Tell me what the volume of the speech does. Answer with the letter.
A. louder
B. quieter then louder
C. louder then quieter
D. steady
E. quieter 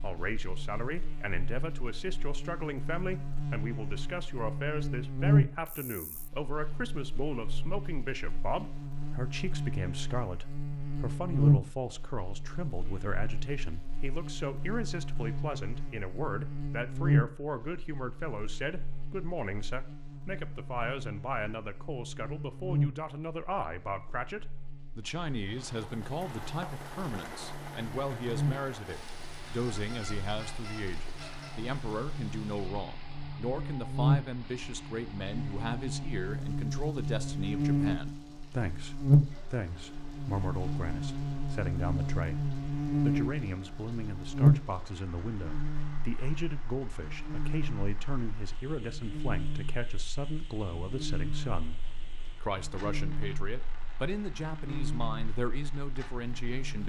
D.